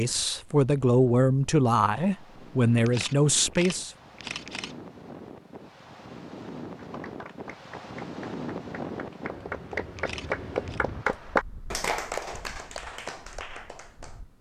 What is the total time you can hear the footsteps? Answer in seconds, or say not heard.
not heard.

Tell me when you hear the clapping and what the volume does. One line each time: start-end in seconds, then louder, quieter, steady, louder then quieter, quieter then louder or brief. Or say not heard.
6.8-14.2 louder then quieter.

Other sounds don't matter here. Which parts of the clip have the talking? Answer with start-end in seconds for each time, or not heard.
0.0-3.9.